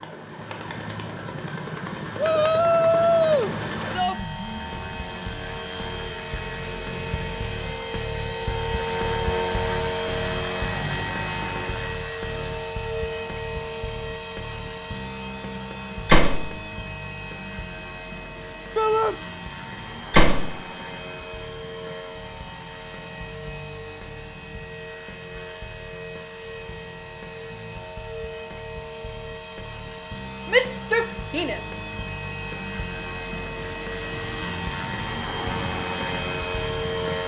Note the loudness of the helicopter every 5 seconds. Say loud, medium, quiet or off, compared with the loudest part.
medium, loud, loud, medium, medium, medium, medium, loud.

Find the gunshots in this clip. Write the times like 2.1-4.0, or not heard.
16.1-16.6, 20.1-20.6.